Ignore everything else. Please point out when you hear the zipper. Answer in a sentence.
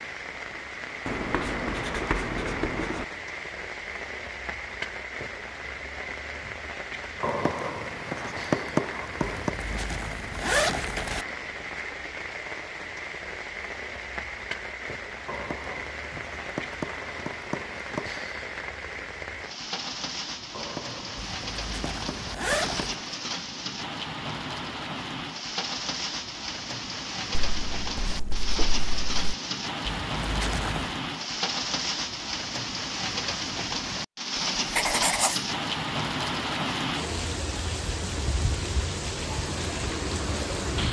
The zipper can be heard from 9.2 to 11.2 s, from 21.1 to 22.9 s and from 29.9 to 31.0 s.